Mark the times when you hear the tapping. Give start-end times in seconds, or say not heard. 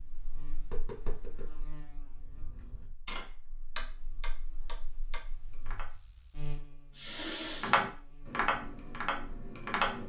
0.0-5.8, 7.6-10.0.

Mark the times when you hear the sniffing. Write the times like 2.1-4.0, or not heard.
6.9-7.8.